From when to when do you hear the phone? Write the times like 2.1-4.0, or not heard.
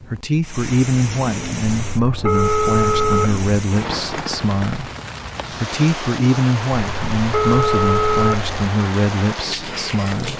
1.7-3.4, 6.8-8.7.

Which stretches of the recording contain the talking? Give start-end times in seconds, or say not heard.
0.1-4.9, 5.6-10.3.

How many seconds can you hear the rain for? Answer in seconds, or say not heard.
10 s.